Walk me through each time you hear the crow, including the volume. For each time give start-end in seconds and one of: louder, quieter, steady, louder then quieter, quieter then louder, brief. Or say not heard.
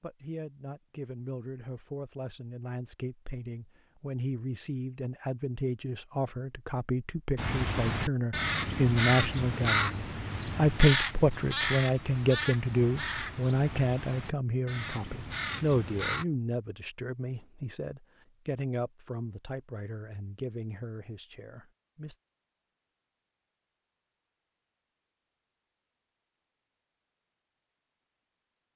7.3-16.2 quieter.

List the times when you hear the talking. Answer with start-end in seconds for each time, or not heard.
0.0-22.1.